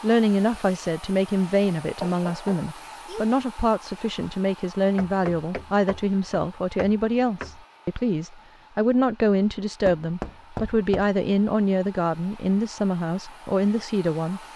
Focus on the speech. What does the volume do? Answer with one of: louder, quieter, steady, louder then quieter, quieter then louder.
steady.